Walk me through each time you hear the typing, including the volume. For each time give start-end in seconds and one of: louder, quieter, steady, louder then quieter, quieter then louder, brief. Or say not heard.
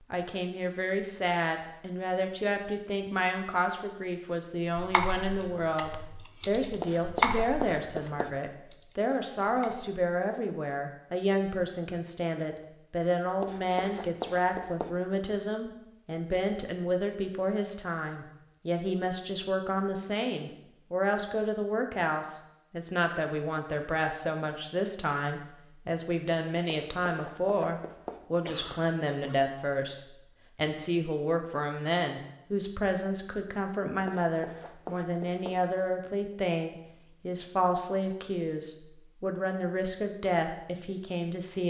4.8-9.9 louder then quieter.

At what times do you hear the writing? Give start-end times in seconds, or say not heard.
6.8-8.4, 13.4-15.0, 26.6-28.2, 34.0-35.6.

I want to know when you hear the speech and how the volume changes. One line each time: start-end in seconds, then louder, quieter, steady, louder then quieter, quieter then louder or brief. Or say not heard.
0.1-41.6 steady.